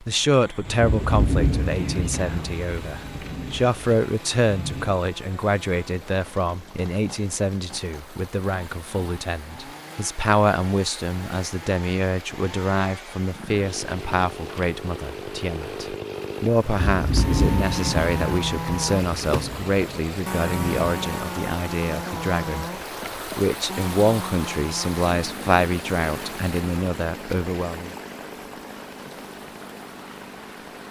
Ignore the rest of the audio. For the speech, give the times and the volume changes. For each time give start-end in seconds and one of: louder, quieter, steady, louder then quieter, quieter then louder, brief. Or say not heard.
0.0-27.9 steady.